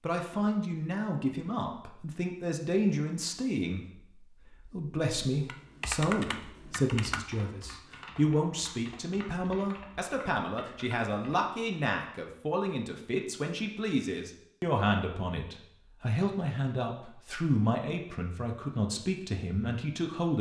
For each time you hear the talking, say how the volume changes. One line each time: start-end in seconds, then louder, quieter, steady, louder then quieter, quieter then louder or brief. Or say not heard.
0.0-20.3 steady.